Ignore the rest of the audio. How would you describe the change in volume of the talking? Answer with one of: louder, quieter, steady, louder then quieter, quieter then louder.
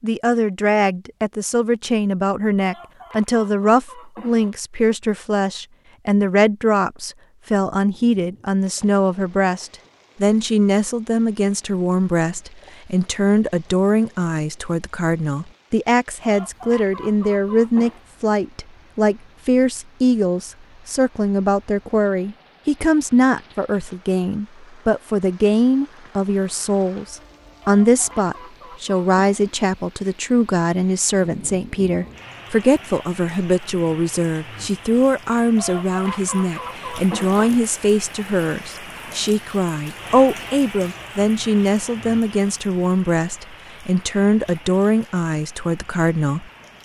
steady.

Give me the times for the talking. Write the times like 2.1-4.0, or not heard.
0.0-46.5.